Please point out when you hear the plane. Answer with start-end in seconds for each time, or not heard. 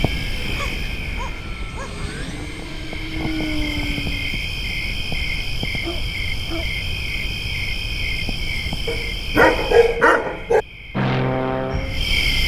0.0-4.3, 10.9-12.3.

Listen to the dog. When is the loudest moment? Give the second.
10 s.